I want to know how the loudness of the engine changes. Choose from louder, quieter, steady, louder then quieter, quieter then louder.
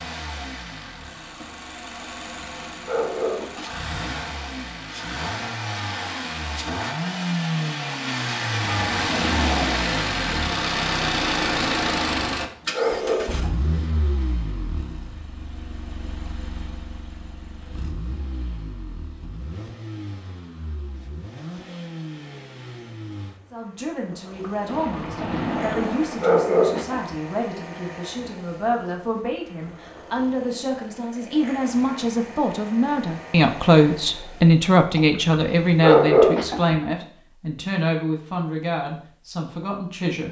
louder then quieter.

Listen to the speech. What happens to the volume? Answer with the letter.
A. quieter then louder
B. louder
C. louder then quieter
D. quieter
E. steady
C.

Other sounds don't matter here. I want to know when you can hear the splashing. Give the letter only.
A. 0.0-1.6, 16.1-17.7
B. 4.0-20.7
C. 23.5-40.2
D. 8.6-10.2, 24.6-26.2
D.